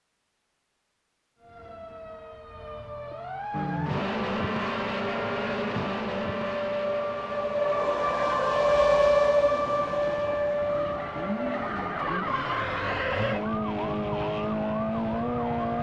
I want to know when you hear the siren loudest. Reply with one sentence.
The volume of the siren peaks at 9 seconds.